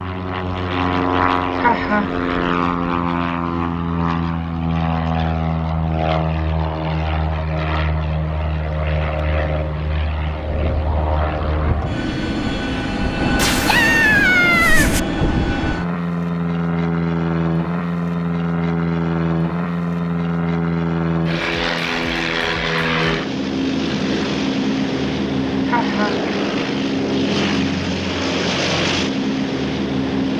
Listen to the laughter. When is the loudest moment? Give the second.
2 s.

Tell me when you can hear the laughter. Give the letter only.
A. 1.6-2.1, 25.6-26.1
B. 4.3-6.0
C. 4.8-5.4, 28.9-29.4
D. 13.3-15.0
A.